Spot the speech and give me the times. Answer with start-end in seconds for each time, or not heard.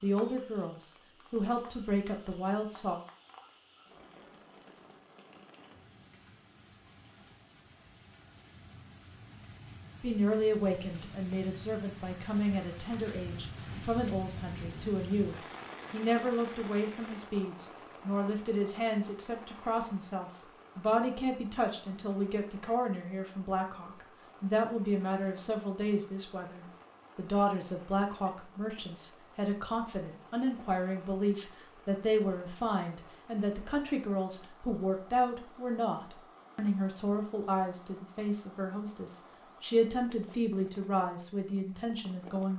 0.0-3.0, 10.0-42.5.